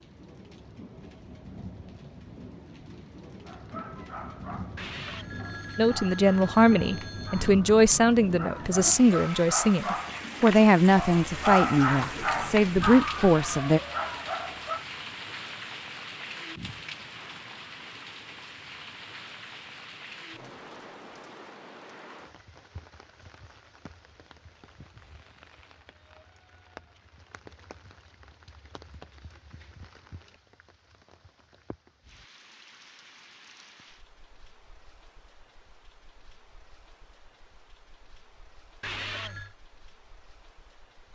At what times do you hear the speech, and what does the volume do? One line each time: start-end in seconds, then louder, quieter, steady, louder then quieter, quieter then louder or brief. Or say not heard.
5.8-13.8 steady.